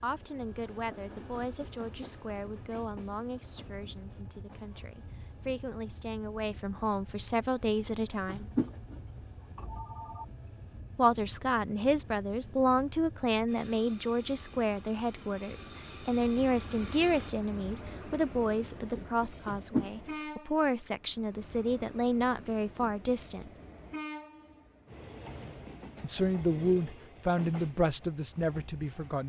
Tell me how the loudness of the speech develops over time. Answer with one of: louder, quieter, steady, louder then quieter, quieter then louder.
louder.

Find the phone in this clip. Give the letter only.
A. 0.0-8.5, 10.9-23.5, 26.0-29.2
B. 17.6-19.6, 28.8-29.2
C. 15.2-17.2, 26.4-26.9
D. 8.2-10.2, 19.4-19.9
D.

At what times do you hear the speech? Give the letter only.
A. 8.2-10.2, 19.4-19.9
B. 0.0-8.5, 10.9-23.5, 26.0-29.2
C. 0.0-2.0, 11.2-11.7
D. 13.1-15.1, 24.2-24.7
B.